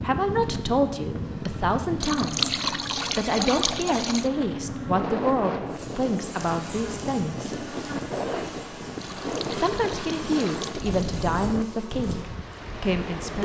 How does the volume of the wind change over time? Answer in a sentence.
The volume of the wind stays about the same.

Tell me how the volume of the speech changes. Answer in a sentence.
The loudness of the speech stays about the same.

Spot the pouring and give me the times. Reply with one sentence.
The pouring can be heard from 2.0 to 4.3 s and from 8.9 to 11.2 s.